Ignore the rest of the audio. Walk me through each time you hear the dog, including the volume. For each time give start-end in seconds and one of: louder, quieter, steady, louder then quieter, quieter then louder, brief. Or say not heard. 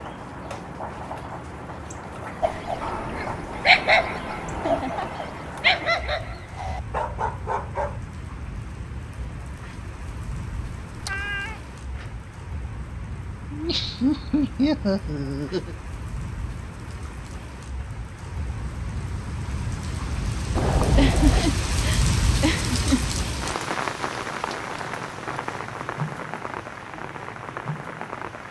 2.4-8.0 quieter.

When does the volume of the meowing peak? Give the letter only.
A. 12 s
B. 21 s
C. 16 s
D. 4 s
B.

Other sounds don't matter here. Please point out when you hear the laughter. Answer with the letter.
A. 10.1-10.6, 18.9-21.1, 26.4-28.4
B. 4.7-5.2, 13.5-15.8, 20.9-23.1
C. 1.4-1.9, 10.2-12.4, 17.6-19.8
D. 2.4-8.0
B.